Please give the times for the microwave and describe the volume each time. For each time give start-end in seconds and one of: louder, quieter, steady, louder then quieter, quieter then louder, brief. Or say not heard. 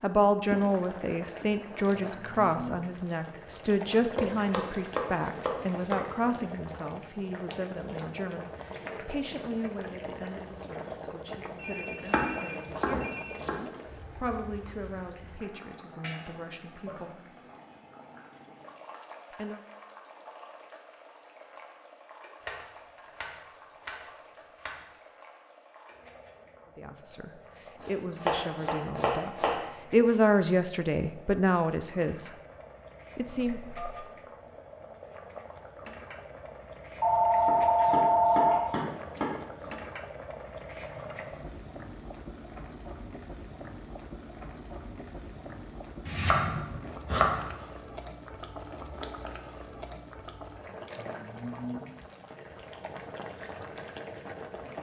not heard.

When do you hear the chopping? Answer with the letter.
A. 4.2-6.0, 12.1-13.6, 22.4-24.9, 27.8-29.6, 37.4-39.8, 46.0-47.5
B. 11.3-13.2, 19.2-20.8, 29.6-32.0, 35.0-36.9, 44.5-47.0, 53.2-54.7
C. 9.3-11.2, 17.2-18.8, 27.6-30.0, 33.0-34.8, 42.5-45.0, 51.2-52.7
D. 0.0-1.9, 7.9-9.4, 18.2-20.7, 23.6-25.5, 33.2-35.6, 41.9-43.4
A.